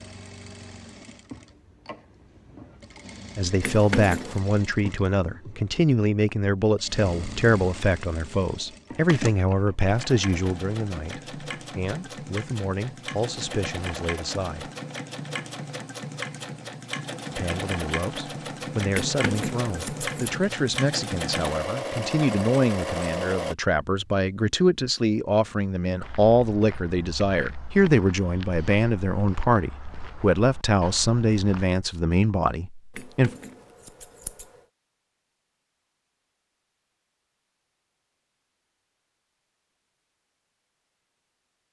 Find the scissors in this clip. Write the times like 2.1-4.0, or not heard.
3.6-4.4, 18.9-20.3, 33.0-34.5.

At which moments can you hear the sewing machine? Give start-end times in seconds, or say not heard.
0.0-23.6.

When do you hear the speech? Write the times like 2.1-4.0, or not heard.
3.4-14.7, 17.3-33.3.